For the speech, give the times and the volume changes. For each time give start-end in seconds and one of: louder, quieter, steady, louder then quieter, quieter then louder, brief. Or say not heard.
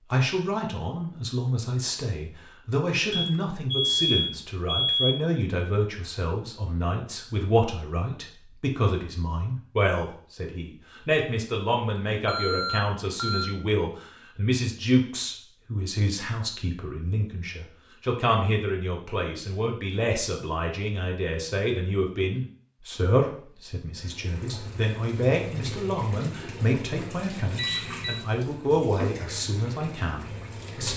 0.1-30.9 steady.